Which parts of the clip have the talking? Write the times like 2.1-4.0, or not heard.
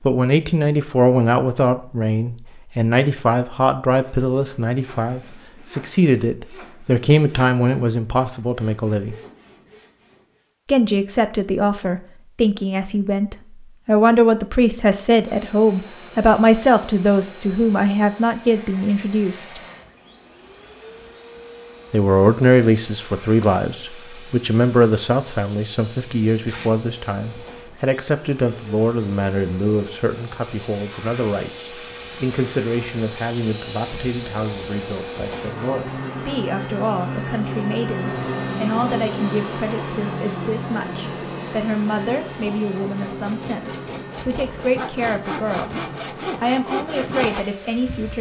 0.0-9.2, 10.7-19.6, 21.9-48.1.